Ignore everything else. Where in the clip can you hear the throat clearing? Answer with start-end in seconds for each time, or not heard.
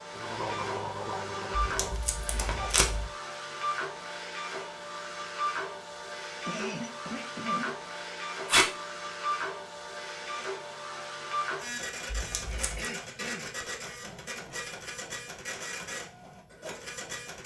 0.1-2.8, 6.5-7.7, 12.4-13.5.